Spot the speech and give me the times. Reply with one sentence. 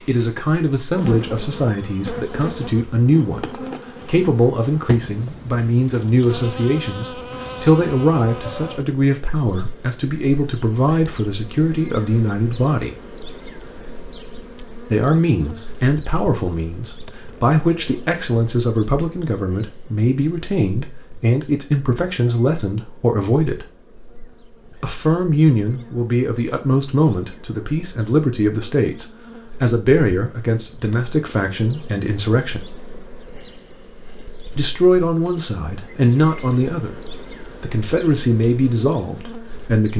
You can hear the speech from 0.1 to 12.9 s, from 14.8 to 23.6 s, from 24.8 to 32.6 s and from 34.5 to 39.9 s.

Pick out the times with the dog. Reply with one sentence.
The dog can't be heard in this clip.